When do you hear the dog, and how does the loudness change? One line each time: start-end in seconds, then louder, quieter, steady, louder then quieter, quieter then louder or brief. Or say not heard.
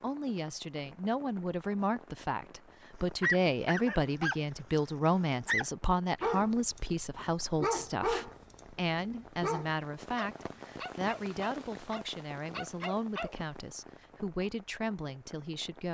3.0-4.8 brief
5.4-13.3 quieter.